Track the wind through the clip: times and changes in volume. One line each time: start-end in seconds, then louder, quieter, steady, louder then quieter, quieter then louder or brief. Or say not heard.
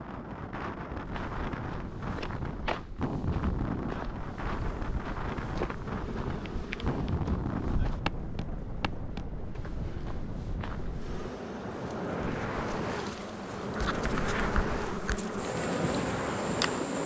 0.0-17.0 steady.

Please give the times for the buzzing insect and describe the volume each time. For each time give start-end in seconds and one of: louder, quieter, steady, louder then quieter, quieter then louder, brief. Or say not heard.
4.5-7.2 brief
10.9-17.0 louder.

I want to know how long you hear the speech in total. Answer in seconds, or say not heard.
not heard.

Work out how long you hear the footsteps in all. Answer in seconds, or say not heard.
10 s.